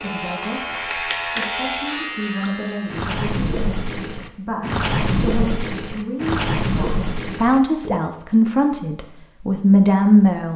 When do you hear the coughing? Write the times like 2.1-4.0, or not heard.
not heard.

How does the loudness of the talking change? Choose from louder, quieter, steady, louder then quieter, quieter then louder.
louder.